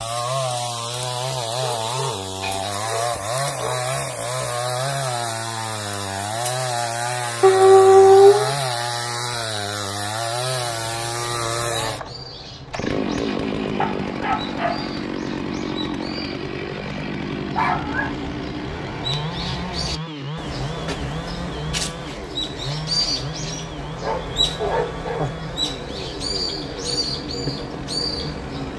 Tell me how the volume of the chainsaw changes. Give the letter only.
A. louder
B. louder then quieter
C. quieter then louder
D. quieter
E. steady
D.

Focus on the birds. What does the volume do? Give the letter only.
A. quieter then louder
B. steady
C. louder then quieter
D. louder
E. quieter
D.